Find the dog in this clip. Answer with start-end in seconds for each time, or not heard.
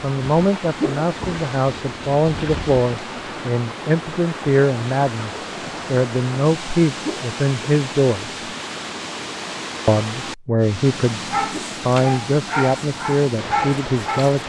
11.3-14.4.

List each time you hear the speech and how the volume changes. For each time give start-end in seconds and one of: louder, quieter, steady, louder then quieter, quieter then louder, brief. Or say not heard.
0.0-8.4 steady
9.8-11.2 brief
11.8-14.4 brief.